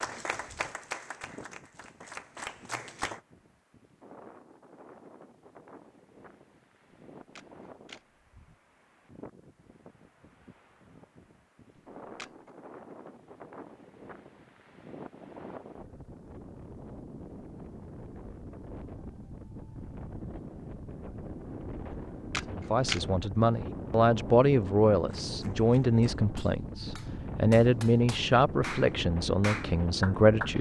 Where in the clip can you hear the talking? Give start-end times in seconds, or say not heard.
22.5-30.5.